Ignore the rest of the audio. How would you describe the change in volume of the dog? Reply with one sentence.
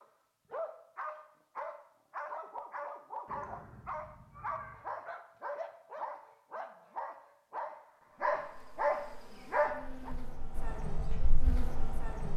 The loudness of the dog goes up.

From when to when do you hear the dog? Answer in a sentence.
You can hear the dog from 0.0 to 10.2 s.